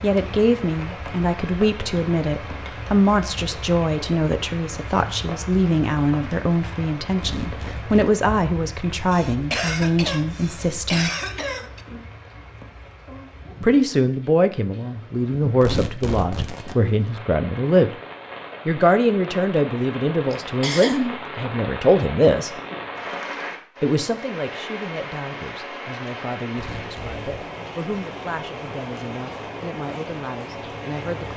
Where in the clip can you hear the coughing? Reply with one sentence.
You can hear the coughing from 9.1 to 11.8 s and from 20.3 to 21.1 s.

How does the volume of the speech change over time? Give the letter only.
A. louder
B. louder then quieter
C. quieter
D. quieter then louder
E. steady
C.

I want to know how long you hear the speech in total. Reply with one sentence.
You can hear the speech for 27 seconds altogether.